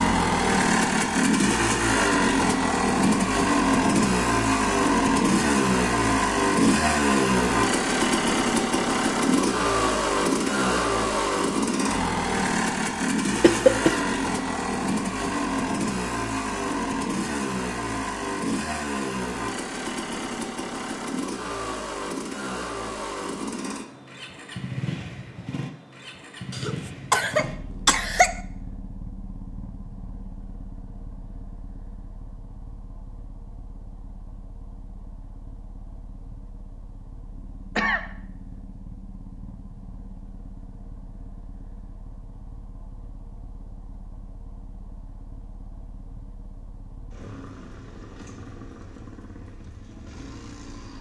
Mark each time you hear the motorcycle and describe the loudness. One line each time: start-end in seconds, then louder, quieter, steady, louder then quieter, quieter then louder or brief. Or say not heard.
0.0-50.9 quieter.